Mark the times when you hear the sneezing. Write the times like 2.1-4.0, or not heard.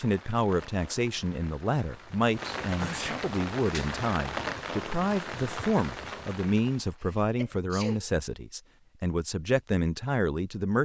2.8-3.2, 7.0-8.1.